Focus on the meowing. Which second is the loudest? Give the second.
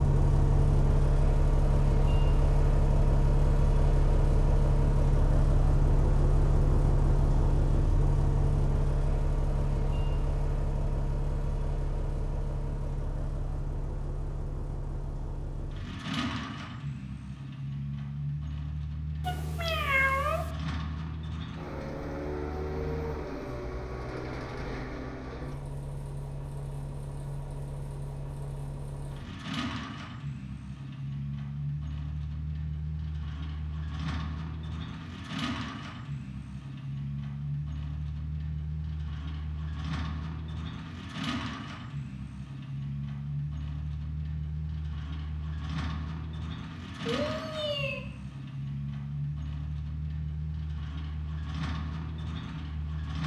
20 s.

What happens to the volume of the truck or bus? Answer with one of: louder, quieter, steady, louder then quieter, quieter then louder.
quieter.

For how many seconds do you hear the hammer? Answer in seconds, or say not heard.
not heard.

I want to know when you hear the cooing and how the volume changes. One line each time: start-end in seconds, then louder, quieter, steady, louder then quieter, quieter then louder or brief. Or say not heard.
not heard.